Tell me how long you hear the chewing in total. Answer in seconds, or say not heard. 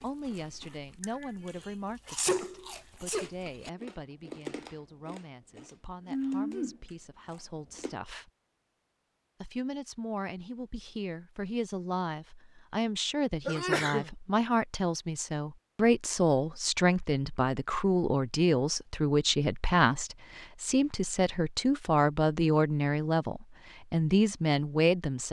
8 s.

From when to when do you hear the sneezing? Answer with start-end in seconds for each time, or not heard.
1.0-3.3, 13.4-14.1.